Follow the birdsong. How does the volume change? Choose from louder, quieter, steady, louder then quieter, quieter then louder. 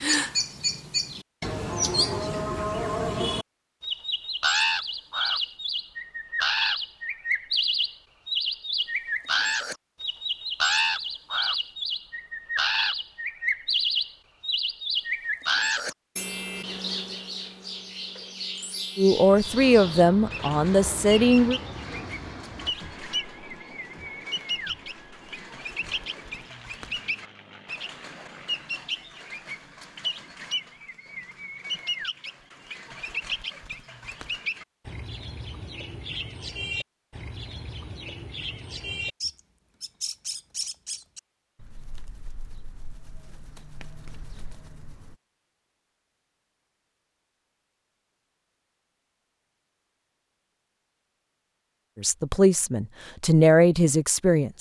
quieter.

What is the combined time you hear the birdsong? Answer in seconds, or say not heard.
45 s.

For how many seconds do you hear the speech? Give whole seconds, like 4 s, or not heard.
5 s.